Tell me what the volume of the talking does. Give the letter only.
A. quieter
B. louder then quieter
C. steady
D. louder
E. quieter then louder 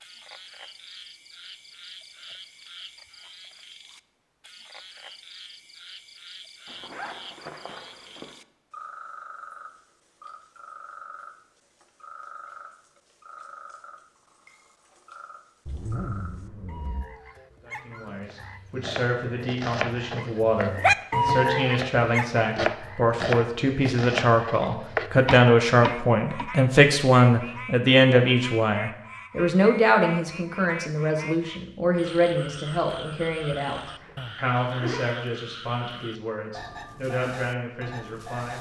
B.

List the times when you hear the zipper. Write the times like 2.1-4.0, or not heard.
6.7-8.3, 15.7-17.1, 33.8-35.1.